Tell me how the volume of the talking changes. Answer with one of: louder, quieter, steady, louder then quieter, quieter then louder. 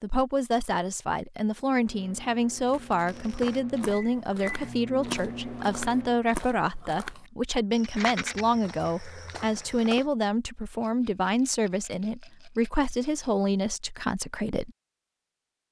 steady.